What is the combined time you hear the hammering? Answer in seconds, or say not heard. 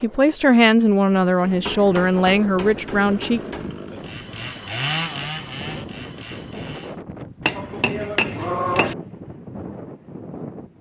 4 s.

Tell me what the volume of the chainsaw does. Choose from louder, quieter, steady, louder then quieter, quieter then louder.
louder then quieter.